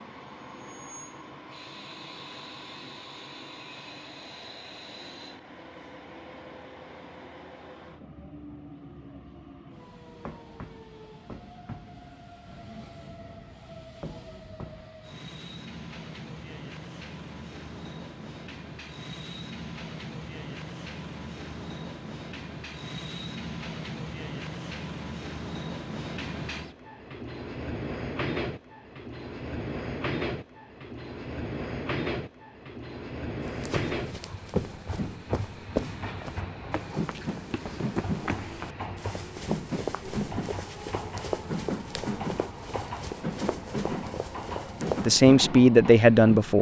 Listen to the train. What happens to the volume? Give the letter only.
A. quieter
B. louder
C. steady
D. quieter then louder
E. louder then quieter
B.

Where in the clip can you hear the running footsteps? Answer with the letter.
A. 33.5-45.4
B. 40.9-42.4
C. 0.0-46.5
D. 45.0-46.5
A.